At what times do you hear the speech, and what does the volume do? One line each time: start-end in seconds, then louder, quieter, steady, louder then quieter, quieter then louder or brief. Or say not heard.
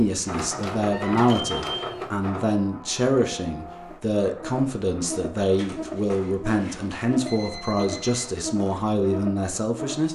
0.0-10.1 steady.